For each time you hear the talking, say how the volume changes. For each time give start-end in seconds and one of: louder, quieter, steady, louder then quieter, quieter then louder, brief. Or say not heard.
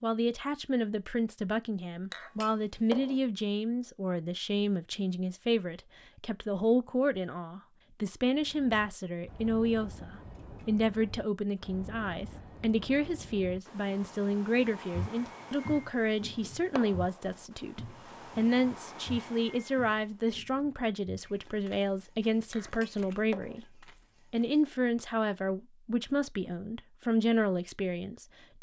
0.0-28.5 steady.